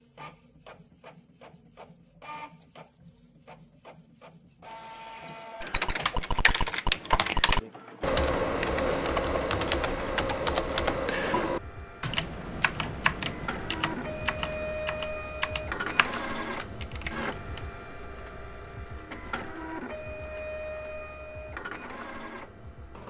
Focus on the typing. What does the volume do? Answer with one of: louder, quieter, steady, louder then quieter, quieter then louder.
quieter.